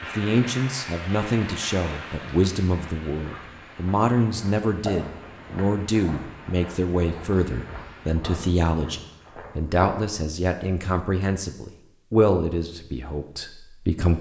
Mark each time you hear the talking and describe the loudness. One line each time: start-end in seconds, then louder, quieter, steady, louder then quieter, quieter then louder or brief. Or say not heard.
0.0-14.1 steady.